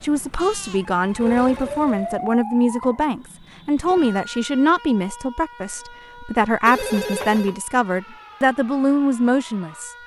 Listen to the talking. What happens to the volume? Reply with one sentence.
The loudness of the talking stays about the same.